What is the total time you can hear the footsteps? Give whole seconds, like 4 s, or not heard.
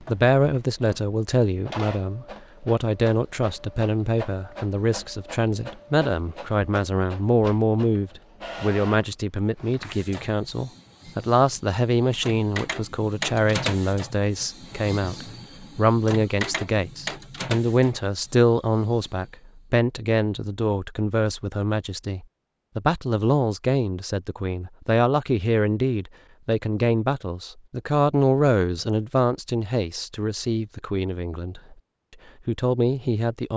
not heard.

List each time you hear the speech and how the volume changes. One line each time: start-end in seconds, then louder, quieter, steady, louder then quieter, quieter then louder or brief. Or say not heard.
0.0-31.8 steady
32.5-33.5 brief.